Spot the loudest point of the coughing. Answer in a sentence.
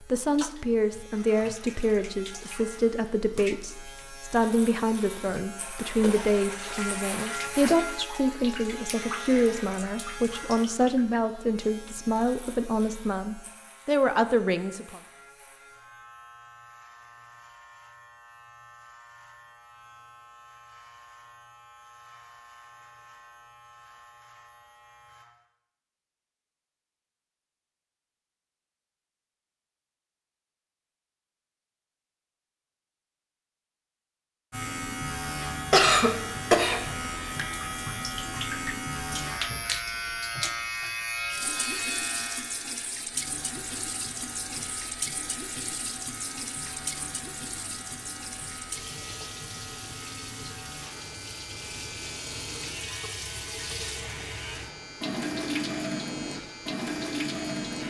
The loudest moment of the coughing is at 36 seconds.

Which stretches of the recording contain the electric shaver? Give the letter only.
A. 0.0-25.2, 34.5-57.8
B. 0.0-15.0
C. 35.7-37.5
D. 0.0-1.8
A.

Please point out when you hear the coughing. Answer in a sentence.
You can hear the coughing from 35.7 to 37.5 s.